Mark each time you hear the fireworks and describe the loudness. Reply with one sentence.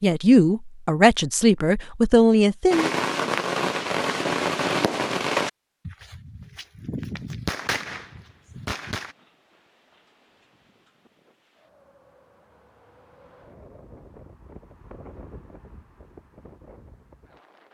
The fireworks can be heard from 2.7 to 9.2 s, getting quieter.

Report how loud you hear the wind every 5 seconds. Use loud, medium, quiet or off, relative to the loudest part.
off, quiet, loud, loud.